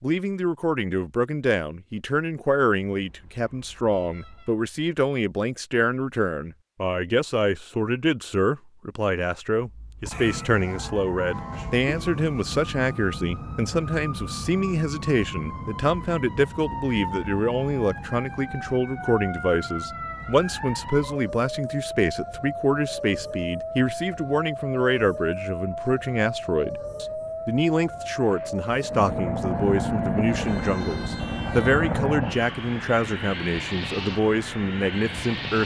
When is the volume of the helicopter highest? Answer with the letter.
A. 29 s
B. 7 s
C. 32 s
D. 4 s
C.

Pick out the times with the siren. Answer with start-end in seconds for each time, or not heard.
9.6-32.0.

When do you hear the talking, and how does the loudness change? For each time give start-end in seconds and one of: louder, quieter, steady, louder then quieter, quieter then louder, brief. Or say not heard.
0.0-35.6 steady.